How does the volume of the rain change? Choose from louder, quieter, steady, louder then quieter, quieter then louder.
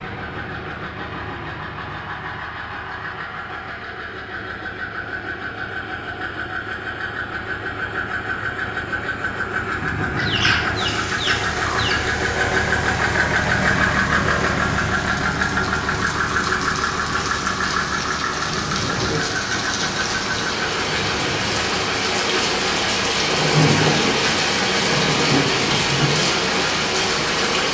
louder.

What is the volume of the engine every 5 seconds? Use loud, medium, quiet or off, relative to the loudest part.
medium, medium, loud, loud, medium, medium.